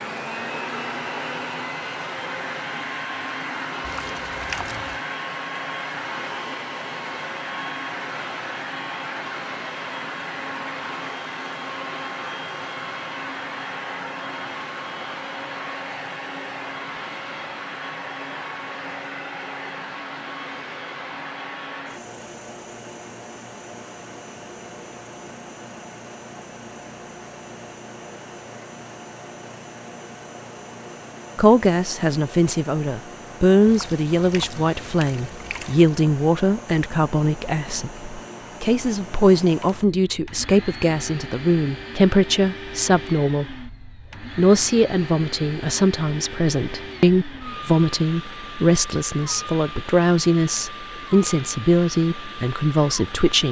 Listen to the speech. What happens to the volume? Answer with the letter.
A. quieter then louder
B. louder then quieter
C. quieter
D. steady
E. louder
D.